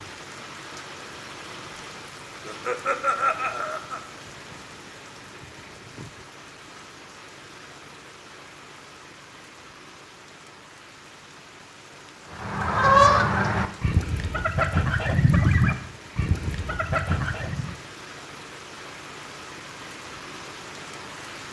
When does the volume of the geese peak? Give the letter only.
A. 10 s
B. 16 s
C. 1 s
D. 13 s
D.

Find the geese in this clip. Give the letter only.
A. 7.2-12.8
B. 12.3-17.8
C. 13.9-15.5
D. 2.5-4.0
B.